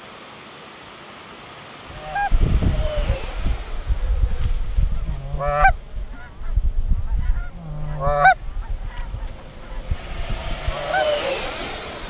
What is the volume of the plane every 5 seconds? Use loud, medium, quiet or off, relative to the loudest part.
quiet, quiet, loud.